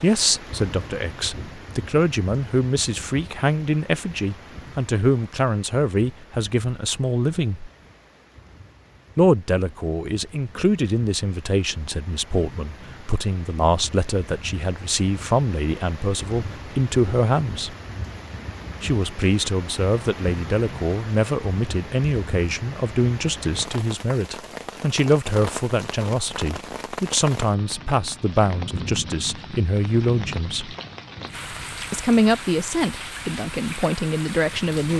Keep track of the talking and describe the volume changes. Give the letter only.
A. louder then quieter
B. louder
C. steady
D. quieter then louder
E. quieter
C.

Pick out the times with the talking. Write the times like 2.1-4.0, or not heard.
0.0-7.7, 9.2-17.8, 18.8-30.8, 31.9-34.9.